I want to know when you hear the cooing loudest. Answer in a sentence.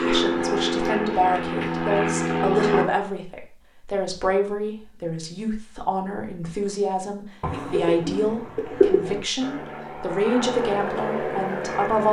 The volume of the cooing peaks at 9 seconds.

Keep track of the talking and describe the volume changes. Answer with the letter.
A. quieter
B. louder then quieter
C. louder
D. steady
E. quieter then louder
D.